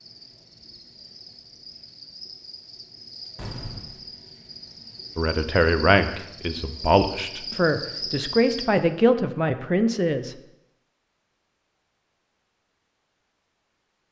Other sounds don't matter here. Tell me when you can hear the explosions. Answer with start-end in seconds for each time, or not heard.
3.4-4.0.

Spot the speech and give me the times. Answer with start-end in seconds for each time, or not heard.
5.2-10.3.